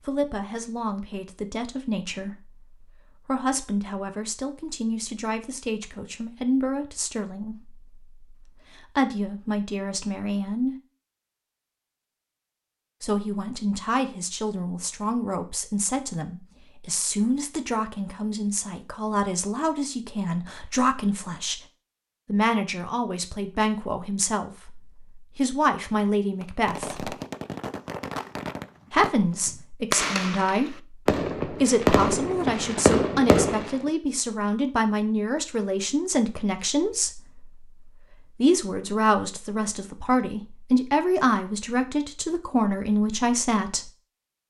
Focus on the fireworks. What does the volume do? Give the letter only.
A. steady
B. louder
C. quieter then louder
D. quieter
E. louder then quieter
B.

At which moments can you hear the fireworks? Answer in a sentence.
You can hear the fireworks from 26.4 to 33.8 s.